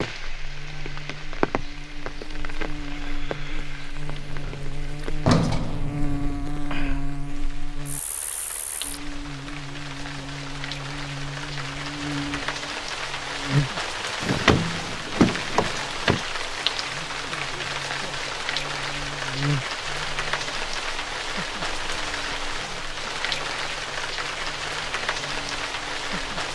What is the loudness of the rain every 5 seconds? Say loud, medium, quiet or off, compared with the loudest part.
medium, medium, loud, loud, loud, loud.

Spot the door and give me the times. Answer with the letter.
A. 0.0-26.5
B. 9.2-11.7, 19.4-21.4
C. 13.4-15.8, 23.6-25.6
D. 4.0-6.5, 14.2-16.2
D.